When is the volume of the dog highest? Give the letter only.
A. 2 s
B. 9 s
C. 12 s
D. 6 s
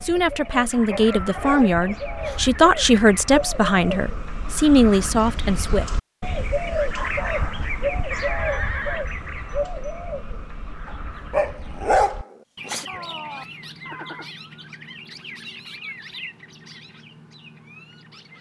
C.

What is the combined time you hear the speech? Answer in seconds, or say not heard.
6 s.